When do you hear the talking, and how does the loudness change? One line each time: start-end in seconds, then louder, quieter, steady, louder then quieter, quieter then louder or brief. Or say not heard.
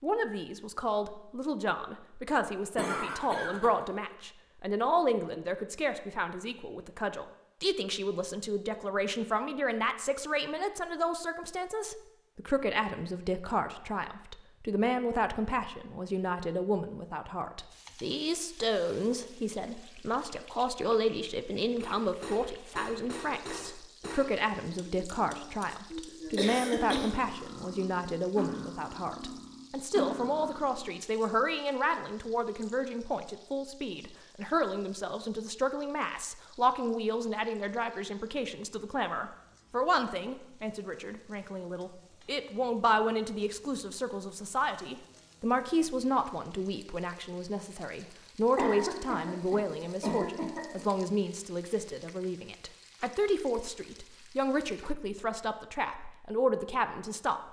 0.0-57.4 steady.